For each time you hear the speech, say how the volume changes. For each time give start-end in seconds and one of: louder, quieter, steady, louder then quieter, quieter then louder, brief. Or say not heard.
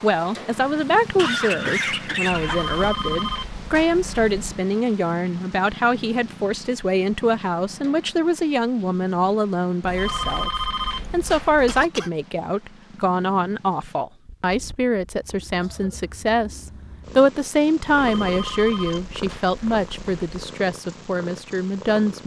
0.0-22.2 steady.